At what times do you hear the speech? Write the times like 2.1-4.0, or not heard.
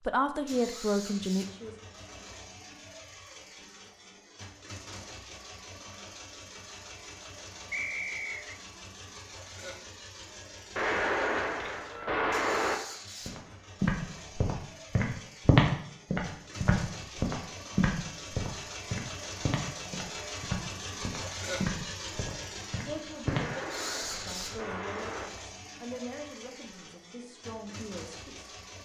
0.1-1.8, 22.9-28.6.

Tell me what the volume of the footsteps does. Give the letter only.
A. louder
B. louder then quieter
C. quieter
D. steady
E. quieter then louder
C.